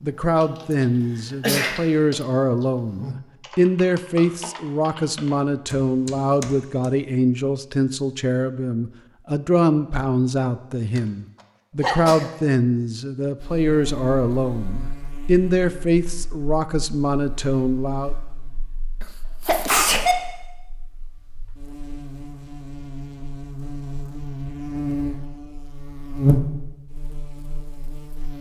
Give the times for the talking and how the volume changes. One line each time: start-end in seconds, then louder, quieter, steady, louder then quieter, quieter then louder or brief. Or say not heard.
0.0-18.1 steady.